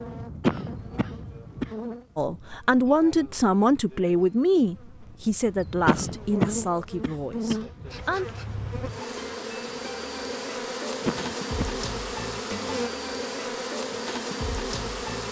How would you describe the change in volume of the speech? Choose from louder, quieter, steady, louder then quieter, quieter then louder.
quieter.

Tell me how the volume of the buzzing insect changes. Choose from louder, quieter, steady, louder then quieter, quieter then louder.
quieter then louder.